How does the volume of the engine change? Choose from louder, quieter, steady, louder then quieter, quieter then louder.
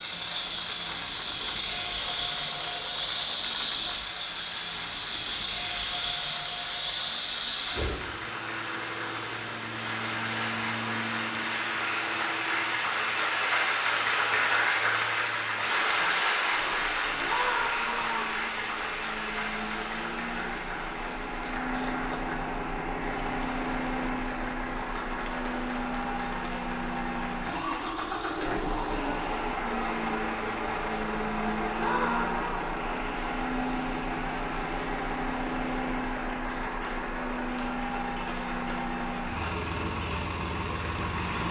quieter then louder.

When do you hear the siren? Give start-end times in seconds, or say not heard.
not heard.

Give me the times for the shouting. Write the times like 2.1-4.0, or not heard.
17.2-18.4, 31.8-32.6.